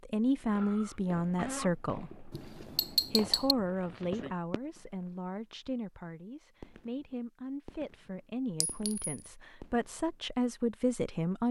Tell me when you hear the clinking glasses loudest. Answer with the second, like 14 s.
3 s.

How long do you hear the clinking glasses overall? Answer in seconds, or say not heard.
2 s.